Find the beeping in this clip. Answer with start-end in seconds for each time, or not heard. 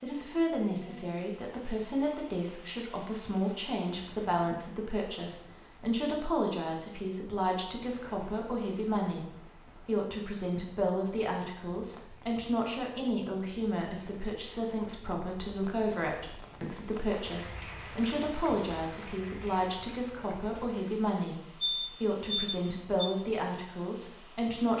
21.6-23.1.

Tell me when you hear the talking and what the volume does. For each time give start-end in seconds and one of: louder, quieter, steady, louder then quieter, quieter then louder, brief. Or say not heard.
0.0-9.2 steady
9.8-21.4 steady
22.0-24.7 brief.